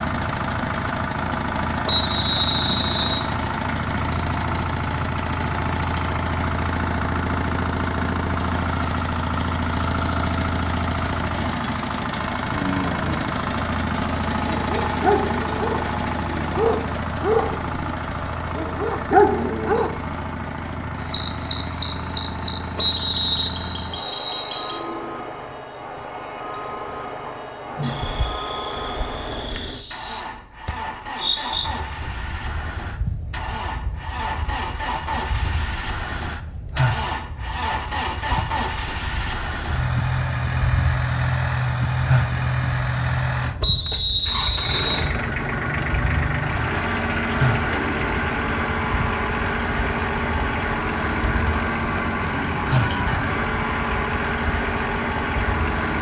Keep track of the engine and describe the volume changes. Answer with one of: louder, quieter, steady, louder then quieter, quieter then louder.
quieter then louder.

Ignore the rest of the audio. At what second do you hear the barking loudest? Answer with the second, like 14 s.
19 s.